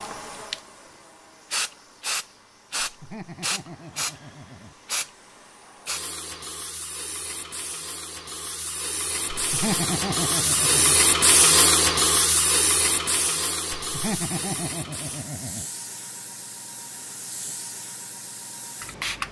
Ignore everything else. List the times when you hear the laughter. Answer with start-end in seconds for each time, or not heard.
2.8-4.8, 9.3-11.0, 13.8-15.7.